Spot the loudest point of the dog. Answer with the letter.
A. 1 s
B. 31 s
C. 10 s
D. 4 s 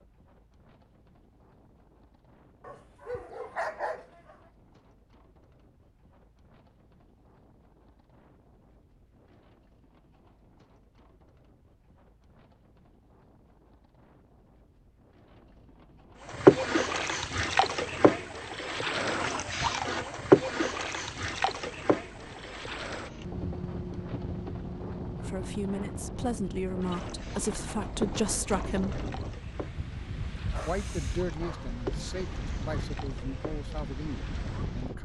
D.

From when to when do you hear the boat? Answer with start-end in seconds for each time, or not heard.
16.2-35.0.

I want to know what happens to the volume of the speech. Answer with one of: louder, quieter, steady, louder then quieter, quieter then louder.
quieter.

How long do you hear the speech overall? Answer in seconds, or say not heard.
8 s.